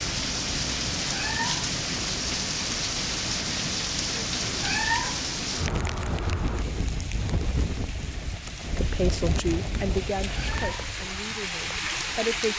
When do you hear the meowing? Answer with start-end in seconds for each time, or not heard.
1.1-1.7, 4.6-5.2, 10.3-10.9.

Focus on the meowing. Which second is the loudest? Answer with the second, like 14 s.
5 s.